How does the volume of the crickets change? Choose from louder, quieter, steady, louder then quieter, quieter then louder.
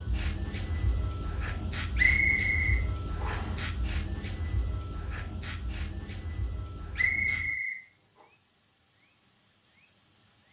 quieter.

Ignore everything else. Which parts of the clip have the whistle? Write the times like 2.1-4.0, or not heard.
1.9-3.5, 7.0-7.8.